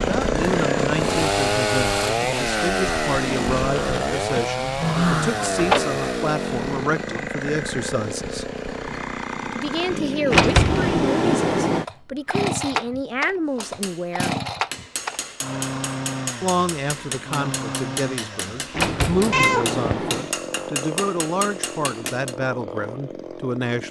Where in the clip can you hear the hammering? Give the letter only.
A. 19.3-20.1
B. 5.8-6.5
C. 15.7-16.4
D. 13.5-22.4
D.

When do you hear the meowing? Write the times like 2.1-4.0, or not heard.
19.3-20.1.